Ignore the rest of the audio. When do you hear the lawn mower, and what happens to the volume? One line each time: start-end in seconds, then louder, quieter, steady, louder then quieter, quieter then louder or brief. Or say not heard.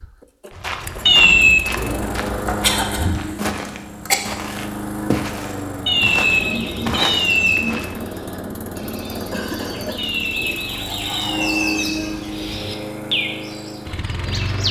0.0-14.6 steady.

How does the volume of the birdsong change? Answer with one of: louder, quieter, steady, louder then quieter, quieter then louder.
louder.